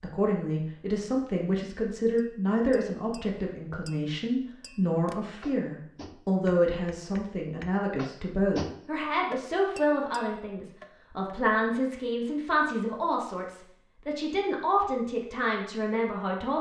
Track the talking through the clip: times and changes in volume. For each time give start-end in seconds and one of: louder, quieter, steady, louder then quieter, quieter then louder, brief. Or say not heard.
0.0-16.5 steady.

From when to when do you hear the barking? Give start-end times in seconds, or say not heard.
not heard.